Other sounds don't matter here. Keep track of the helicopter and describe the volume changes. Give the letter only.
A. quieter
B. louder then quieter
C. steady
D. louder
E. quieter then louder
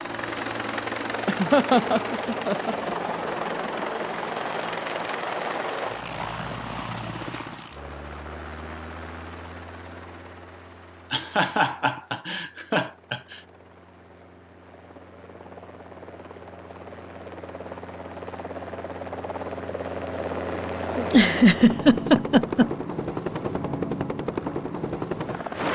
E.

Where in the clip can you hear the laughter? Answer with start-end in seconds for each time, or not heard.
1.2-3.1, 11.1-13.2, 20.9-22.7.